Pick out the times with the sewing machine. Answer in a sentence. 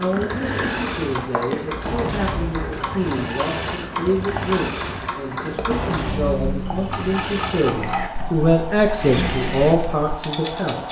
The sewing machine can be heard from 0.0 to 10.8 s.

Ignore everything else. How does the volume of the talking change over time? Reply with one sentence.
The volume of the talking goes up.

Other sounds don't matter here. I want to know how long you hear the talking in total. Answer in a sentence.
You can hear the talking for 11 seconds altogether.